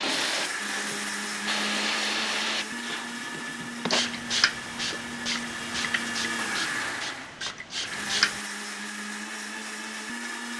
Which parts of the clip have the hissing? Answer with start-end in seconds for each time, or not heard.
0.0-8.4.